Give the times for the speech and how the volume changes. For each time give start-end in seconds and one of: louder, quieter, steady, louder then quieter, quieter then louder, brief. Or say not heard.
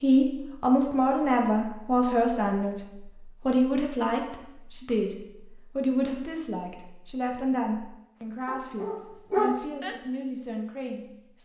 0.0-11.4 quieter.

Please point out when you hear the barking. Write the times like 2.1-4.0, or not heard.
8.4-9.9.